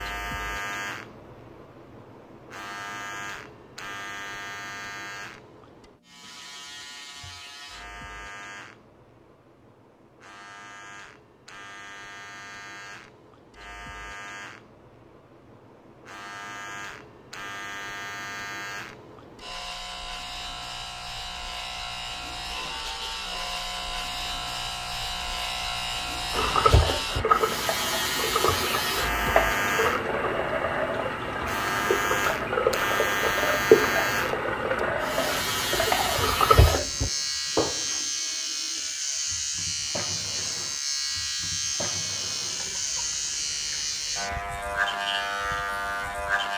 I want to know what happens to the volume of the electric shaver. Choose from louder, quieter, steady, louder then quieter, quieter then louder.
louder.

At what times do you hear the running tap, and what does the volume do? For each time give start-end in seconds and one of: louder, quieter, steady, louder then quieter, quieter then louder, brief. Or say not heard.
26.3-46.5 quieter.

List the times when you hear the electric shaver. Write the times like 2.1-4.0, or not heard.
0.0-46.5.